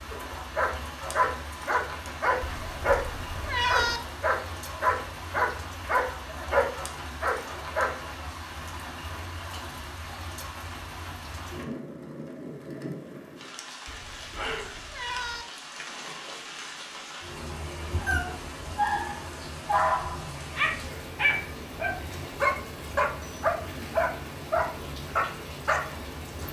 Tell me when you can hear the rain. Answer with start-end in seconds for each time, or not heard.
0.0-26.4.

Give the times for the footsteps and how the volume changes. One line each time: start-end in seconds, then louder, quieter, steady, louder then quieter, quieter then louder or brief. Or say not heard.
not heard.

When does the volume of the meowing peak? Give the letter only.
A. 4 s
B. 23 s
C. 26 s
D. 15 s
A.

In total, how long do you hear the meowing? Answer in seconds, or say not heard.
3 s.